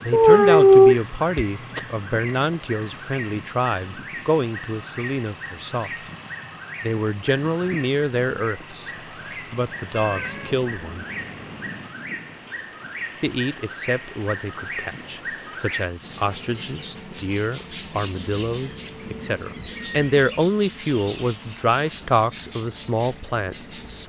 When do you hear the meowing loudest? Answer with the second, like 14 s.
1 s.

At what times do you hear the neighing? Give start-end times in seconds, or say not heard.
not heard.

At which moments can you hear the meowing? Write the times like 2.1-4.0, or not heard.
0.1-1.8, 9.9-11.8, 18.6-20.1.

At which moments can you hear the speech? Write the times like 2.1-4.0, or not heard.
0.0-5.9, 6.8-8.9, 9.5-11.1, 13.2-24.0.